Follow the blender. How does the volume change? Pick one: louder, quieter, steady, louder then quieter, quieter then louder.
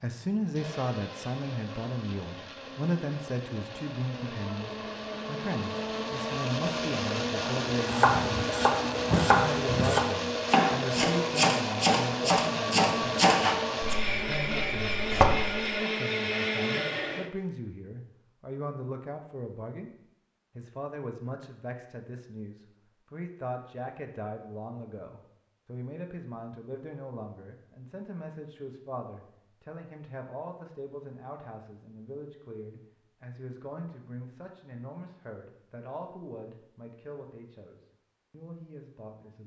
louder.